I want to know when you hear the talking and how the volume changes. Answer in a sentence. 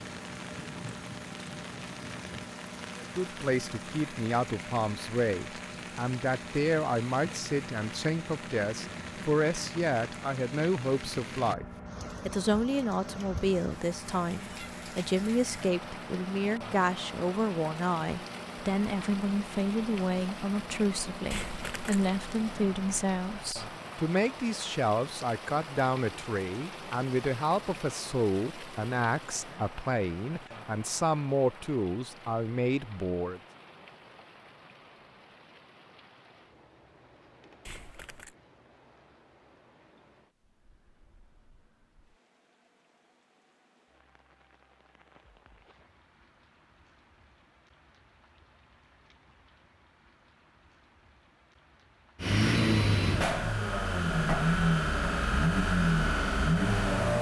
The talking can be heard from 3.0 to 11.7 s, at a steady volume; and from 12.2 to 33.4 s, at a steady volume.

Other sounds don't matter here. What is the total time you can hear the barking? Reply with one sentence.
The barking can't be heard in this clip.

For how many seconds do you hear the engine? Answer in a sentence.
The engine can be heard for 28 seconds in total.